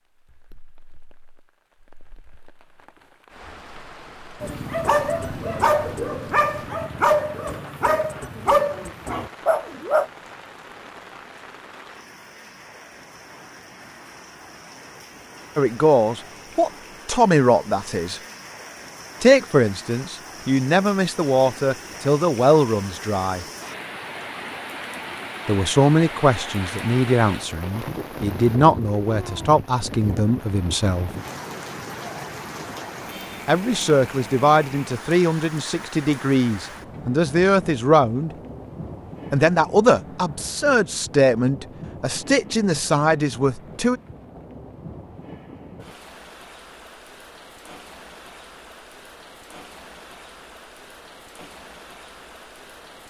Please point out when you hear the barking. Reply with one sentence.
The barking can be heard from 4.4 to 10.1 s.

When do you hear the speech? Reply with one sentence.
You can hear the speech from 15.6 to 18.2 s, from 19.2 to 23.4 s, from 25.4 to 31.1 s, from 33.5 to 38.3 s and from 39.3 to 44.0 s.